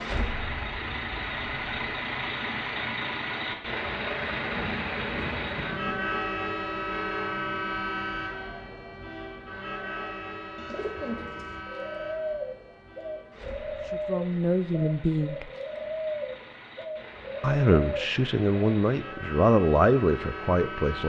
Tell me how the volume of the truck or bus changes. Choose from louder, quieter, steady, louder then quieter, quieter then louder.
quieter then louder.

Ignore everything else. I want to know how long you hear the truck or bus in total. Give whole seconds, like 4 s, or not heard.
21 s.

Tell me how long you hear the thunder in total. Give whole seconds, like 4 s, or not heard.
2 s.